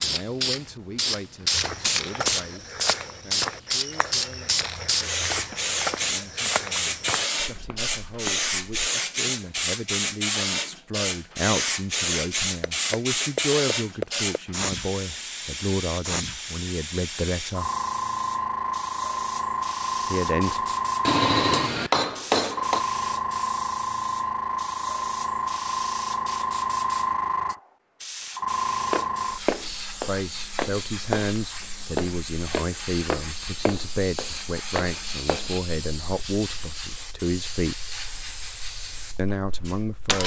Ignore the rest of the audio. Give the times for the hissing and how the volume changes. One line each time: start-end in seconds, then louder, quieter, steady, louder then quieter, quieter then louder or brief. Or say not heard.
0.0-40.2 quieter.